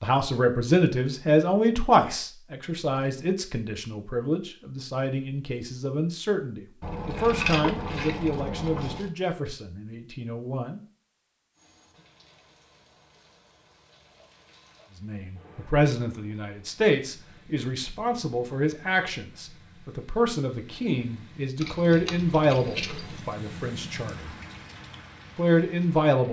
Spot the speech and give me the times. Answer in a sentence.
You can hear the speech from 0.0 to 10.8 s, from 15.0 to 24.3 s and from 25.4 to 26.2 s.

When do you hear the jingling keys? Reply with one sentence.
You can hear the jingling keys from 6.8 to 9.1 s and from 21.6 to 23.2 s.